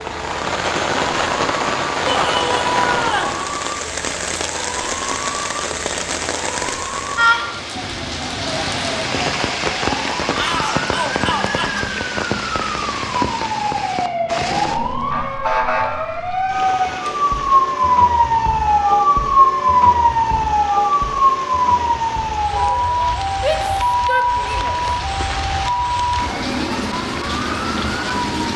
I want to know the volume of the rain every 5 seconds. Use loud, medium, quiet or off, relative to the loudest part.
loud, loud, loud, quiet, medium, loud.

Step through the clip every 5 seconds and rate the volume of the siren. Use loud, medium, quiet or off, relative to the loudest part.
quiet, quiet, medium, loud, loud, medium.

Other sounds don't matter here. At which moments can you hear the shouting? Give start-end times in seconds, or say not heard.
2.0-3.4, 10.3-11.8, 23.4-24.8.